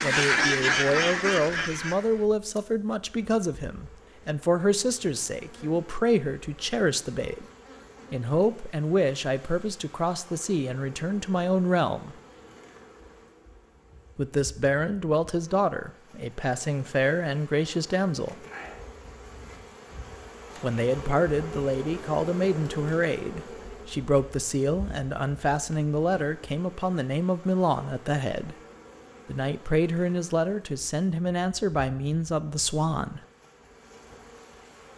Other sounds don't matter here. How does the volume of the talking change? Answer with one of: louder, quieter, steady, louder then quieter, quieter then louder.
steady.